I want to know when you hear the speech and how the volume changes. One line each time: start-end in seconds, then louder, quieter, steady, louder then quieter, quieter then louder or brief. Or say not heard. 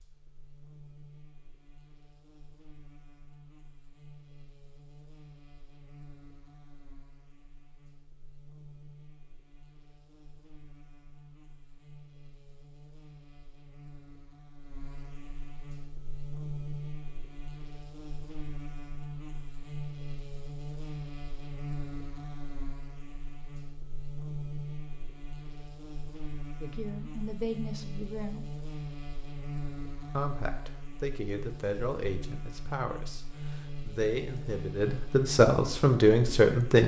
26.6-28.4 brief
30.1-36.8 louder.